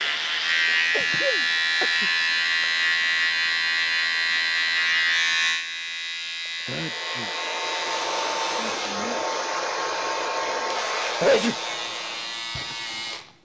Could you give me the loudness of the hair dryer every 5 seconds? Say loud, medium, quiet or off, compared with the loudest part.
off, loud, loud.